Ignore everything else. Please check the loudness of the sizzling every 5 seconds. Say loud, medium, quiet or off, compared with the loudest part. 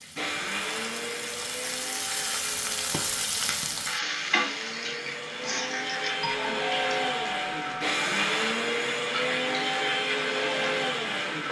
loud, medium, medium.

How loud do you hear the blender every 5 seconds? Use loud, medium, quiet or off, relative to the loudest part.
medium, loud, loud.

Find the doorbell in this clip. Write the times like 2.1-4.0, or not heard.
6.2-7.8.